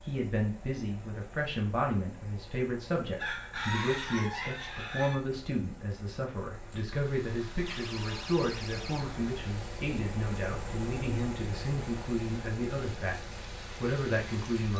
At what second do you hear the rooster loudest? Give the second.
4 s.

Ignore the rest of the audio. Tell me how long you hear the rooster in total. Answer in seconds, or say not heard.
2 s.